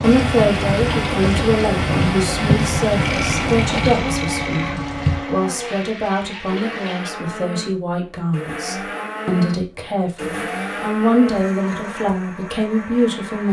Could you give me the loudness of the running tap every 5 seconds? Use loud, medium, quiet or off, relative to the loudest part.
loud, medium, off.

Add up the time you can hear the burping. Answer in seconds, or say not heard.
2 s.